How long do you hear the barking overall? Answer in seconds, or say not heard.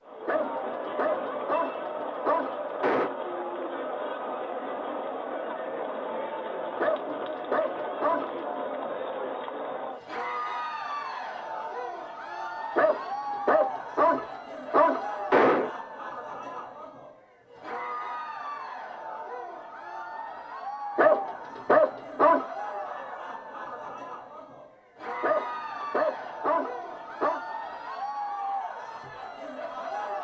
11 s.